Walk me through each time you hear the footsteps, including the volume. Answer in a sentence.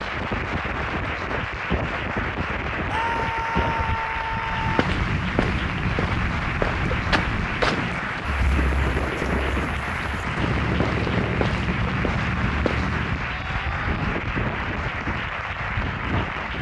You can hear the footsteps from 4.4 to 13.2 s, getting quieter then louder.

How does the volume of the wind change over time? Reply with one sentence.
The loudness of the wind stays about the same.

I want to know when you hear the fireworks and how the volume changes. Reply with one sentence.
The fireworks can't be heard in this clip.